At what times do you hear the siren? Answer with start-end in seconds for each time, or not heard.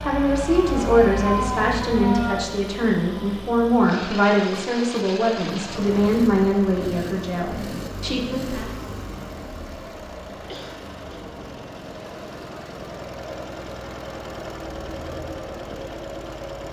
0.0-2.5.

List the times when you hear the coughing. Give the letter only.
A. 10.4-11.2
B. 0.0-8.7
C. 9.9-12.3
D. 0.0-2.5
A.